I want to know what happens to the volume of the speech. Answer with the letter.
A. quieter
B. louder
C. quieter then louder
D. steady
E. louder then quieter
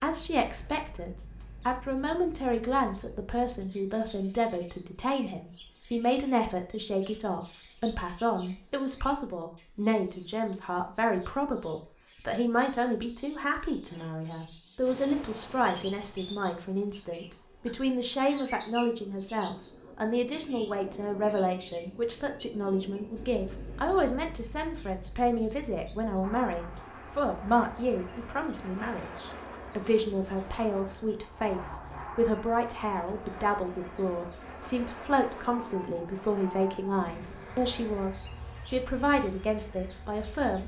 D.